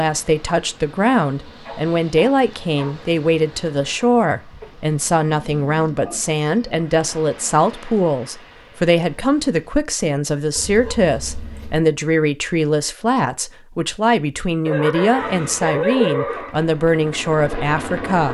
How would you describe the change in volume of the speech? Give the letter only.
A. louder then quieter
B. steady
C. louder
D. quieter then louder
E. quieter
B.